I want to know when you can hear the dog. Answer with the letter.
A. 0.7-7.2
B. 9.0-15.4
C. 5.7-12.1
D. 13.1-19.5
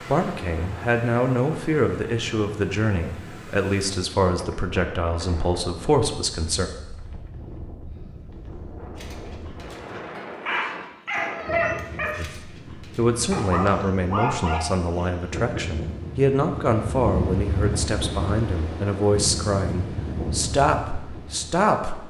B.